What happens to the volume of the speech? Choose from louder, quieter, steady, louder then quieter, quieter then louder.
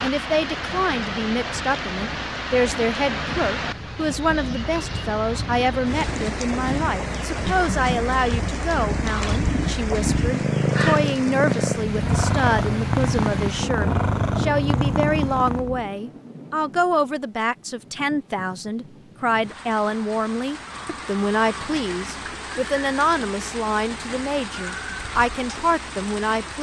steady.